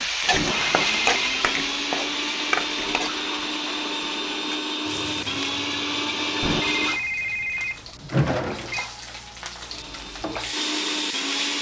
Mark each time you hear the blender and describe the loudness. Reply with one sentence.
The blender can be heard from 0.3 to 7.0 s, at a steady volume; and briefly from 9.7 to 11.5 s.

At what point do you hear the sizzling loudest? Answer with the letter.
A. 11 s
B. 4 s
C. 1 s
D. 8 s
C.